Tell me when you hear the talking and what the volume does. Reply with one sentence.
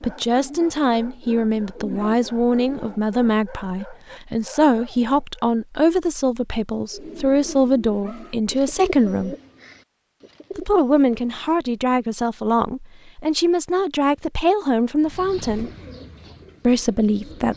The talking can be heard from 0.0 to 9.3 s, at a steady volume; from 10.6 to 15.7 s, at a steady volume; and briefly from 16.6 to 17.5 s.